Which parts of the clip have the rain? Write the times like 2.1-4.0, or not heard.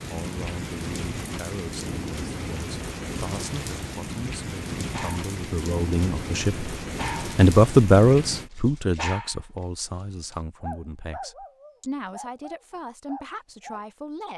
0.0-8.5.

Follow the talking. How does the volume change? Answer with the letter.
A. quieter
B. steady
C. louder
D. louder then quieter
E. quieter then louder
D.